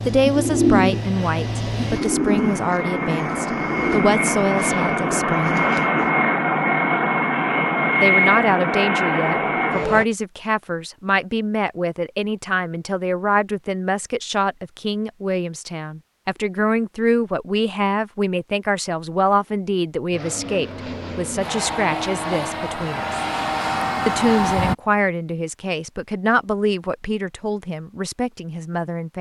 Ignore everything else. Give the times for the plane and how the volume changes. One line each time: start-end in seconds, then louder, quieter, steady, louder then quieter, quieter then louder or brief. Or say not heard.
0.0-10.1 louder
20.1-24.8 louder.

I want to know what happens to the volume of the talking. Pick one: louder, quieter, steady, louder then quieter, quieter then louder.
steady.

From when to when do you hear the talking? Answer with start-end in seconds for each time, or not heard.
0.1-5.6, 8.0-23.2, 24.1-29.1.